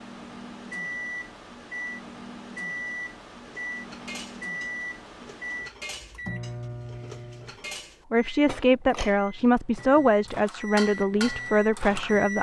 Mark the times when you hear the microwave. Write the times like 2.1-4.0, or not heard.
0.0-12.3.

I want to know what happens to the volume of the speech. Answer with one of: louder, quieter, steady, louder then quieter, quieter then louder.
steady.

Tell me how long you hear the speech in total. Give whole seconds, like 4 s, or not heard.
4 s.